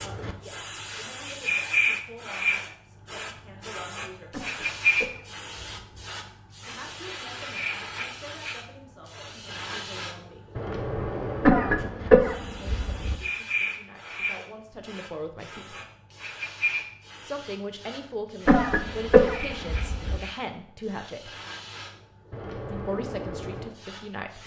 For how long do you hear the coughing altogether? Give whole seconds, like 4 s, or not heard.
5 s.